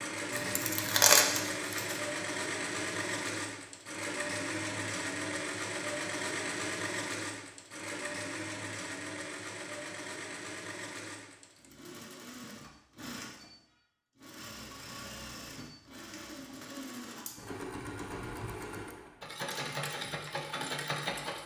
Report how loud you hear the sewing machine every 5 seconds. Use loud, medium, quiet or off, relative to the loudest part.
loud, loud, medium, medium, loud.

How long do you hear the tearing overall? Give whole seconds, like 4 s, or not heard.
2 s.